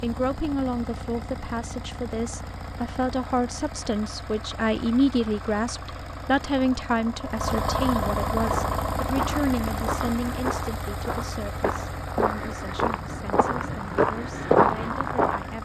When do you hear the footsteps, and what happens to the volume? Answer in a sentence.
The footsteps can be heard from 8.3 to 15.5 s, getting louder.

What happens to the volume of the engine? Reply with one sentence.
The loudness of the engine goes up, then down.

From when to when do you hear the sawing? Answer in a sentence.
You can't hear the sawing here.